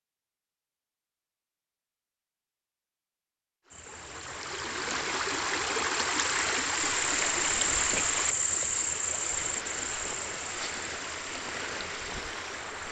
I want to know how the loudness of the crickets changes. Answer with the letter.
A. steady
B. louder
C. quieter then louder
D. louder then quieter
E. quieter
D.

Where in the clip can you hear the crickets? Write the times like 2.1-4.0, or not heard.
3.7-12.8.